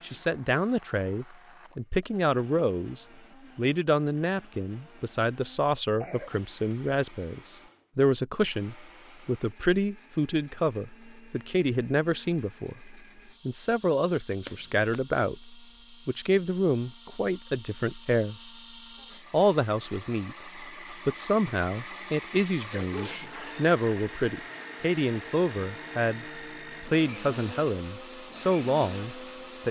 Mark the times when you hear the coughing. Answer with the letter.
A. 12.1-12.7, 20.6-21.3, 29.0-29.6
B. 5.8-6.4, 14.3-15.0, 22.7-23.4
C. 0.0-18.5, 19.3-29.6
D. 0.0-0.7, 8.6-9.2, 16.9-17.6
B.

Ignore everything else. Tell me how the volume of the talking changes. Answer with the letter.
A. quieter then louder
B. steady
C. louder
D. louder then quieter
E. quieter
B.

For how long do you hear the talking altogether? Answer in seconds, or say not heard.
29 s.